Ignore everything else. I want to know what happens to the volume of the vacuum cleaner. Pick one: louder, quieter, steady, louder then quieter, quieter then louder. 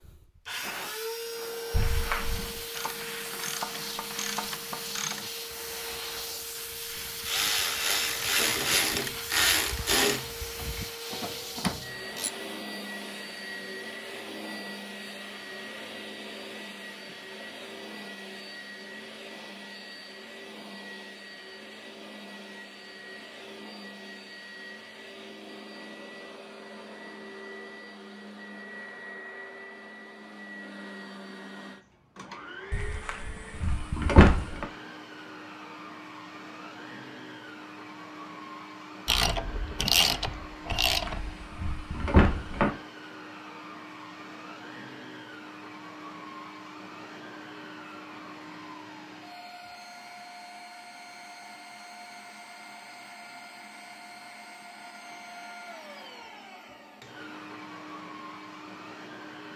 quieter.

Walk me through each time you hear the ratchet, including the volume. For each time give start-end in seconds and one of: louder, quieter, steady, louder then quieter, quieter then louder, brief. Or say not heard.
2.7-12.3 louder then quieter
39.0-41.4 brief.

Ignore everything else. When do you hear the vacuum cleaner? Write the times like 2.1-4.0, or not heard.
0.0-59.5.